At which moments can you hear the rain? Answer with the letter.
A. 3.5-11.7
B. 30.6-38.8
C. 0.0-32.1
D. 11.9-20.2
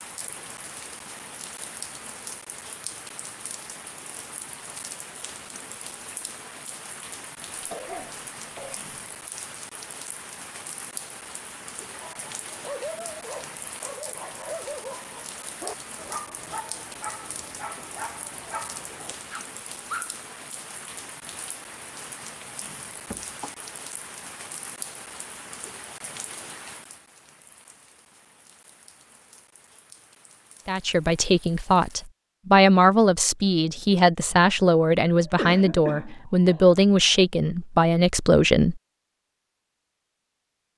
C.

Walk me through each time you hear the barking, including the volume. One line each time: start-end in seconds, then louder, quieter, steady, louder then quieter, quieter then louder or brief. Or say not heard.
11.9-20.2 steady.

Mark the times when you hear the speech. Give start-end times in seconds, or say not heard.
30.6-38.8.